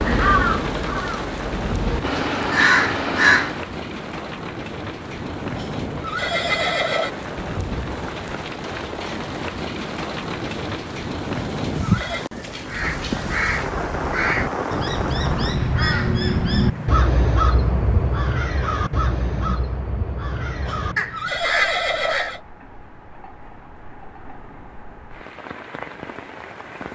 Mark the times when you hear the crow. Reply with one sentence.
The crow can be heard from 0.0 to 3.6 s and from 12.7 to 22.4 s.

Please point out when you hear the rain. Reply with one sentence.
You can hear the rain from 0.0 to 26.8 s.